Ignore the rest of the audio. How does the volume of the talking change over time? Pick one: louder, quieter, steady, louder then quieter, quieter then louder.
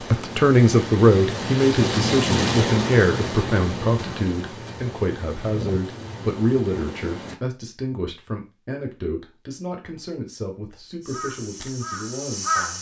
quieter.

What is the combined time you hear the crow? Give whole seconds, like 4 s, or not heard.
2 s.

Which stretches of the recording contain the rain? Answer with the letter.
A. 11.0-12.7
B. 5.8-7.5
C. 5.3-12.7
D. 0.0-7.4
D.